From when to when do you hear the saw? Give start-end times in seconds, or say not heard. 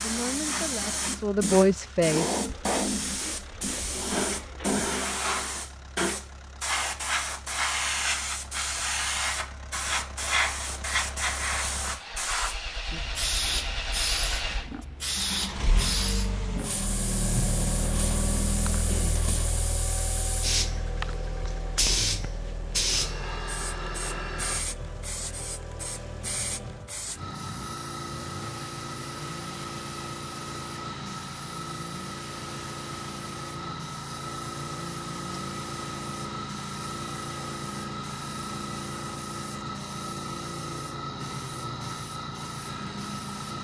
2.5-4.8, 22.9-24.7.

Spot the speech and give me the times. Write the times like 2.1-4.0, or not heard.
0.0-2.2.